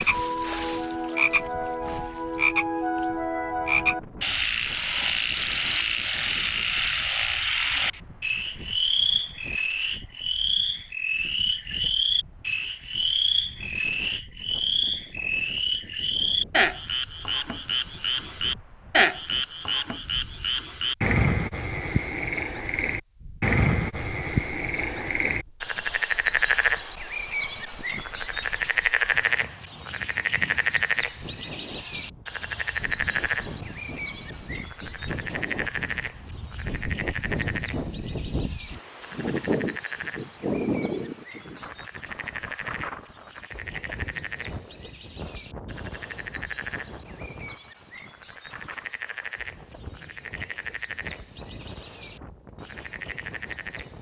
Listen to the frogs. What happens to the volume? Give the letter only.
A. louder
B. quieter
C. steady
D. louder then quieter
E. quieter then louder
B.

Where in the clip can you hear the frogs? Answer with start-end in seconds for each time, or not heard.
0.0-53.9.